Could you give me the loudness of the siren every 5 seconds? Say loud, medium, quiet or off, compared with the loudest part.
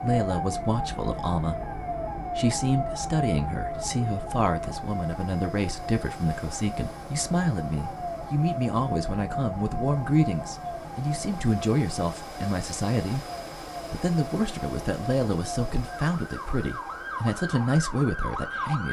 loud, loud, medium, loud.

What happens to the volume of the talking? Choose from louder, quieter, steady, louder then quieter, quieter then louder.
steady.